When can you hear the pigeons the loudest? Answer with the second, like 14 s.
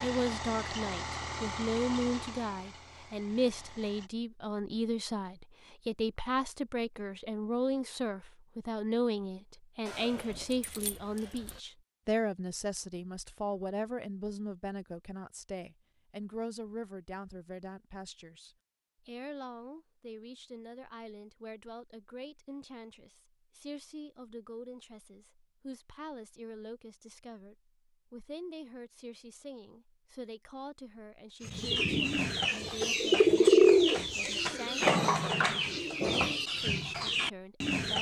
34 s.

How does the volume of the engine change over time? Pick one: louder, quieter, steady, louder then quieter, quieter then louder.
quieter.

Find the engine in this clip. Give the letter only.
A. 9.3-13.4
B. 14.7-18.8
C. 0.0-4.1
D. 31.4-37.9
C.